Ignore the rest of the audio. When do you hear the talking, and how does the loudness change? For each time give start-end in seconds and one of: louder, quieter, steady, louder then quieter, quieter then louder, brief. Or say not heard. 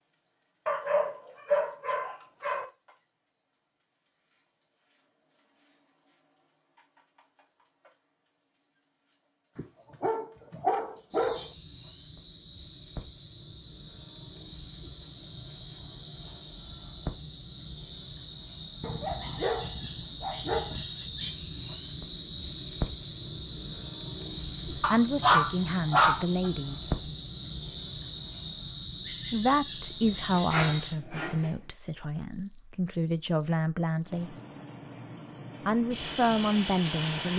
24.7-26.9 brief
29.3-34.4 quieter then louder
35.6-37.3 brief.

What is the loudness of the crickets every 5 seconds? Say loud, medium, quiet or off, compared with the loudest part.
quiet, quiet, quiet, medium, loud, loud, loud, loud.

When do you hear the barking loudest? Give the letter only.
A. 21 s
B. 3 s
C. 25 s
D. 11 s
C.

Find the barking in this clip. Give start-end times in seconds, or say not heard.
0.7-2.6, 9.6-11.5, 18.8-20.9, 24.8-26.5, 30.0-31.6.